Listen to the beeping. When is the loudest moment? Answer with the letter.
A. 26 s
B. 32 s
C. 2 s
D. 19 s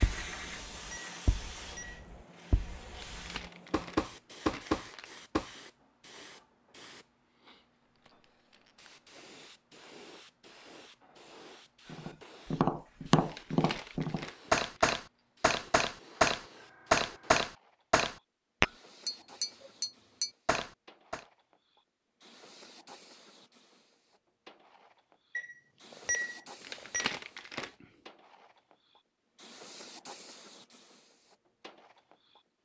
A.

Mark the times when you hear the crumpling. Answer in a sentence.
You can hear the crumpling from 2.9 to 5.1 s, from 13.2 to 15.0 s and from 26.6 to 27.9 s.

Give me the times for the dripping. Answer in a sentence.
The dripping can't be heard in this clip.